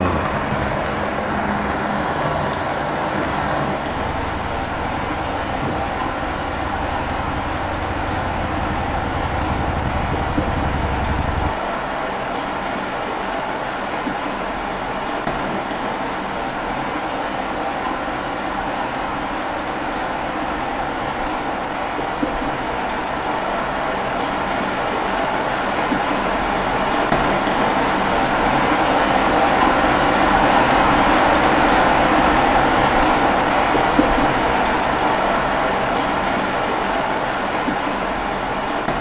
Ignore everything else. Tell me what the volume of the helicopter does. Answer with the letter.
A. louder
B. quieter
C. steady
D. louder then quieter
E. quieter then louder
E.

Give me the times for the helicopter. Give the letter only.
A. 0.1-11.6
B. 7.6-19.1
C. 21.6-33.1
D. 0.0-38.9
A.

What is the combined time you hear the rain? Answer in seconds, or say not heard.
39 s.